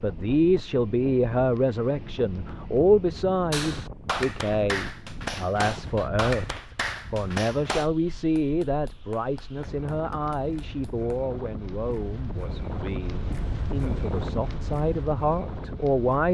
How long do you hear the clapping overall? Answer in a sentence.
You can hear the clapping for 8 seconds altogether.